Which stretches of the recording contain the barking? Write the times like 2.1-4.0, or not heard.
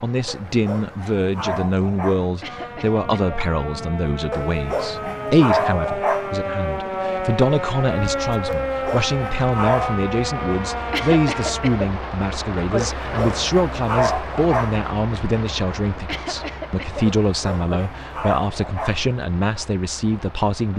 0.2-2.3, 4.3-6.3, 8.4-9.9, 12.8-14.8, 17.1-19.1.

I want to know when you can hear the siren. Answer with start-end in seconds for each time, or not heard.
2.4-11.8.